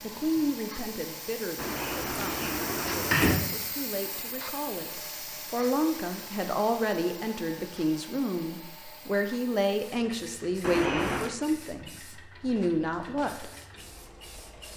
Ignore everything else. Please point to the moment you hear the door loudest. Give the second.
3 s.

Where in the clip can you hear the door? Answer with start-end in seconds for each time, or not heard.
1.6-3.5, 10.6-11.3.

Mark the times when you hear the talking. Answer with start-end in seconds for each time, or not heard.
0.0-13.5.